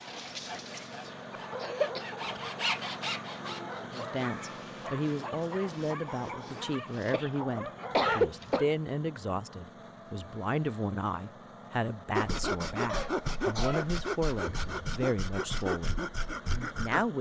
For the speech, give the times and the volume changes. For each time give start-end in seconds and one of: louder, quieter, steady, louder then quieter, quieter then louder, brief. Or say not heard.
3.9-17.1 steady.